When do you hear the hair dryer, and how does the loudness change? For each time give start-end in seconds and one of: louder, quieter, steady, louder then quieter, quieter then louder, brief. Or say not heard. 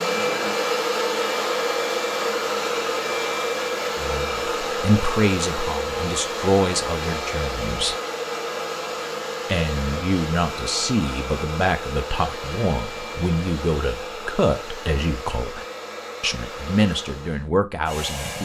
0.0-18.3 quieter.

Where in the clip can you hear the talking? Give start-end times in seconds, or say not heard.
4.0-8.0, 9.4-18.3.